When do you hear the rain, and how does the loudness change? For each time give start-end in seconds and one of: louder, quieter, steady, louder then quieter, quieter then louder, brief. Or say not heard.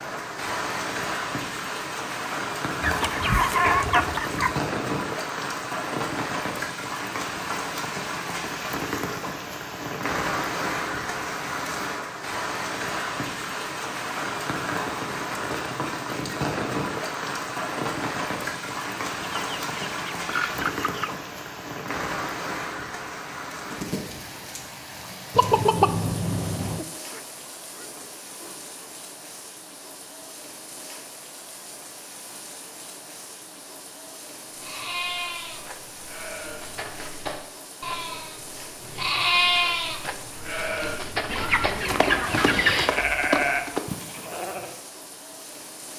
0.0-45.9 quieter.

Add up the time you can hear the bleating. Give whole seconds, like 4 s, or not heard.
10 s.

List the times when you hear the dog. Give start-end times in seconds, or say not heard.
26.9-28.9.